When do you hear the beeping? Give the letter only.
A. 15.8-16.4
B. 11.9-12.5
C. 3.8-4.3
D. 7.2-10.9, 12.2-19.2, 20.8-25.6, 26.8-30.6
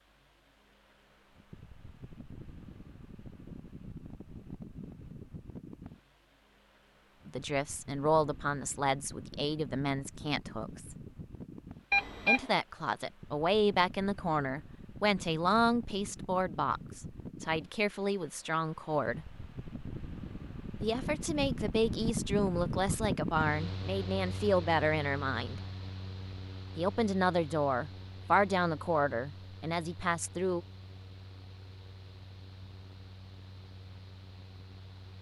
B.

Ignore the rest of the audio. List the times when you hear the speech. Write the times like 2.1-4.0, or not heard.
7.2-10.9, 12.2-19.2, 20.8-25.6, 26.8-30.6.